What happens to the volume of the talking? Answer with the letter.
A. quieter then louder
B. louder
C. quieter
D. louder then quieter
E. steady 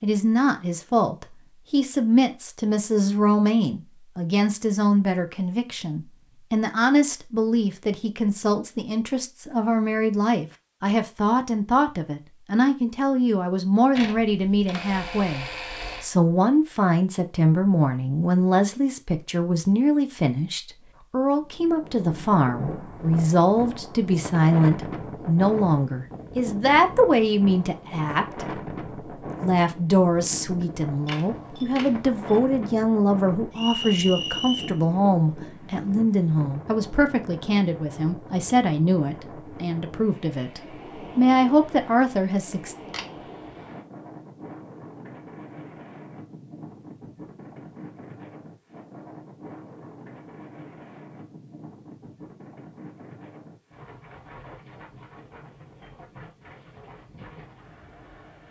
E.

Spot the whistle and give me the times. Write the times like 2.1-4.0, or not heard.
33.5-34.8.